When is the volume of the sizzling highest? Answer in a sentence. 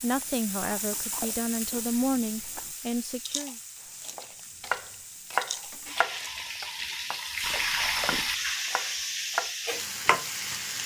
The volume of the sizzling peaks at 8 seconds.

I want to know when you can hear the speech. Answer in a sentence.
You can hear the speech from 0.0 to 3.5 s.